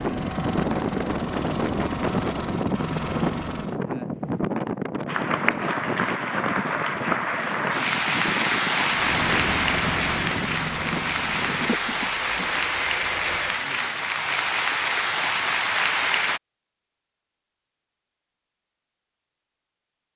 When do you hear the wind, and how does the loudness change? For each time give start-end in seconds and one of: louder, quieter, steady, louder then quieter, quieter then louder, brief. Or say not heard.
0.0-12.7 quieter.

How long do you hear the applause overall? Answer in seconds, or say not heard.
11 s.